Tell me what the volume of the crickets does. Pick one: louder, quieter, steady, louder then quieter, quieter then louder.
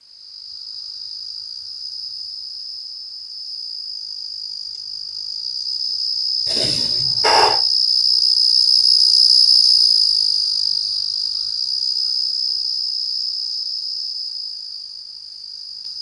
louder then quieter.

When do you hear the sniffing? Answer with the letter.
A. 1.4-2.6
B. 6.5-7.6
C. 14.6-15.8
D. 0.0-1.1
B.